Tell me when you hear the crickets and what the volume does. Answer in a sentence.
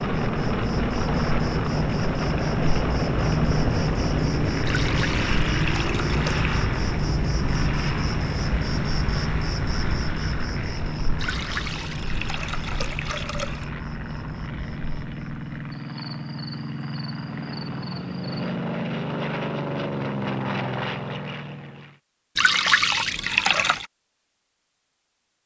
You can hear the crickets from 0.0 to 18.6 s, getting quieter.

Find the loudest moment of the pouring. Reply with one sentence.
The loudest moment of the pouring is at 23 seconds.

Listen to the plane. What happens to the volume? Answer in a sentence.
The volume of the plane goes down, then up.